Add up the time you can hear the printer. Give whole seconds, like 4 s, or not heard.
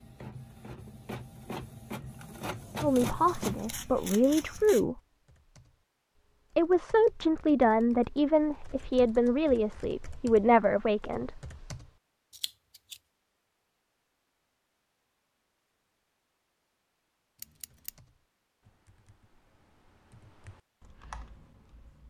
4 s.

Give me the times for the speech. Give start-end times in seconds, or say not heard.
2.8-5.0, 6.5-11.4.